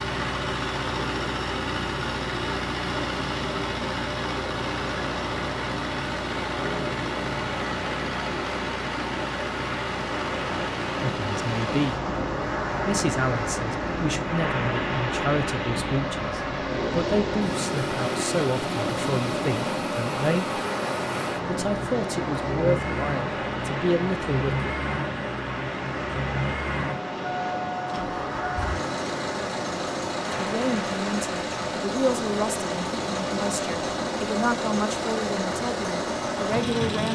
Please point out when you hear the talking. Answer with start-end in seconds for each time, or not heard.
11.2-12.0, 12.8-20.6, 21.4-24.7, 30.4-37.1.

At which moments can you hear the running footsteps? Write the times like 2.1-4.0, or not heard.
not heard.